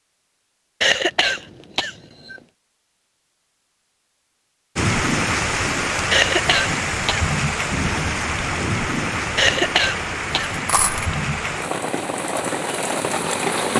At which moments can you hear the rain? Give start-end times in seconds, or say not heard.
4.8-13.7.